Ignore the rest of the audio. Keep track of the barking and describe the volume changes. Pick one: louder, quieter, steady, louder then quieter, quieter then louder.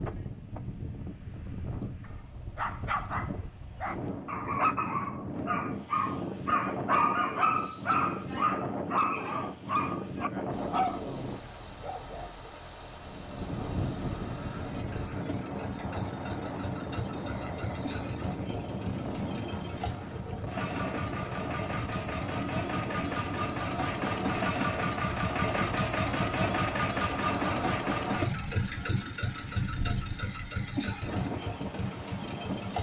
louder then quieter.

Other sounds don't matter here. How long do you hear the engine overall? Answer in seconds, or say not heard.
22 s.